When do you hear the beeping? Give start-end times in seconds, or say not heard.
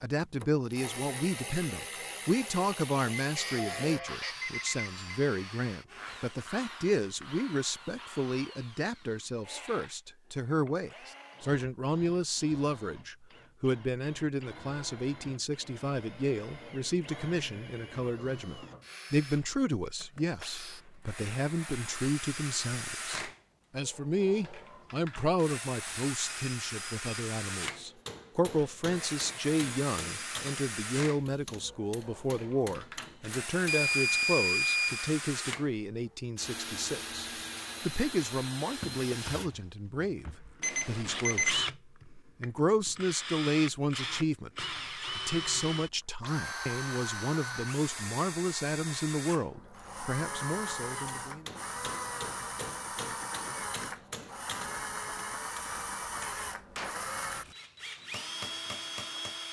3.1-5.0, 33.6-35.1, 40.6-41.6.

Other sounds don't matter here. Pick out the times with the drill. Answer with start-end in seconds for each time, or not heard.
0.4-59.4.